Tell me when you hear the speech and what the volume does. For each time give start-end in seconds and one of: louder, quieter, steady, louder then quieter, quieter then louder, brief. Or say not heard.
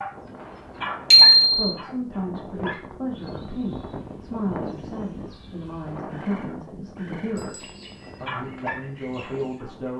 1.5-9.9 steady.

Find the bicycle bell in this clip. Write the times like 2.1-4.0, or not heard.
1.1-1.7, 7.3-8.2.